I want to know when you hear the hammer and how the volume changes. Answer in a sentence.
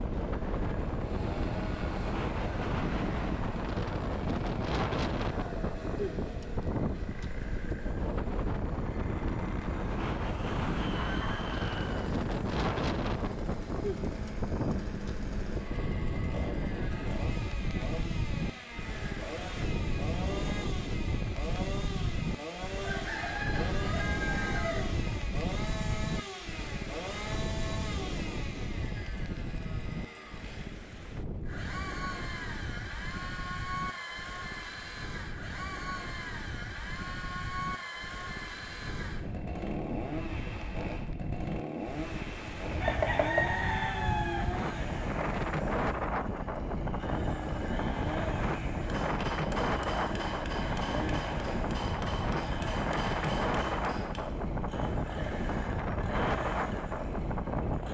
The hammer can be heard from 48.8 to 54.2 s, at a steady volume.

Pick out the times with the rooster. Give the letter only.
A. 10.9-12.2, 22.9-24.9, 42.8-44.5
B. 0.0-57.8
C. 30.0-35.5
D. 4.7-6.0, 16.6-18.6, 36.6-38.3
A.